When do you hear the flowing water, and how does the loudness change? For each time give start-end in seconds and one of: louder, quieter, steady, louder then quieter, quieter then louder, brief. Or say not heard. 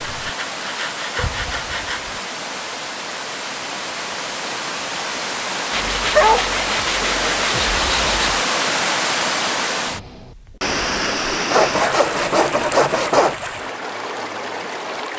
0.0-15.1 louder then quieter.